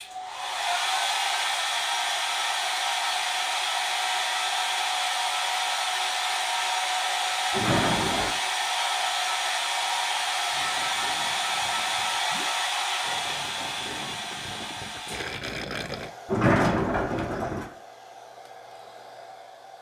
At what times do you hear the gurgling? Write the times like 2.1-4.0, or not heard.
10.4-16.1.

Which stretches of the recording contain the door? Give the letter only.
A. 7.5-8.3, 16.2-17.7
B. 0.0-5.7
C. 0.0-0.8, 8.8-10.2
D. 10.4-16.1
A.